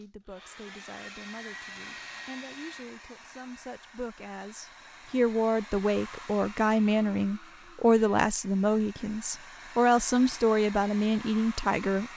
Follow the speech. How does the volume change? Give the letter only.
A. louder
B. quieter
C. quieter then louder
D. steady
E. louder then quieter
A.